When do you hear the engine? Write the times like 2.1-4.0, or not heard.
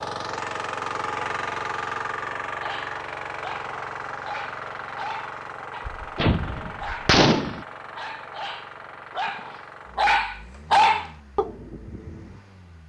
0.0-12.8.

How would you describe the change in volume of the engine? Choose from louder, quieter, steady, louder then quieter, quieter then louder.
quieter.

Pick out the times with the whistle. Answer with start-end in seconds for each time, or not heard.
not heard.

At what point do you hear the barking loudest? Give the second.
11 s.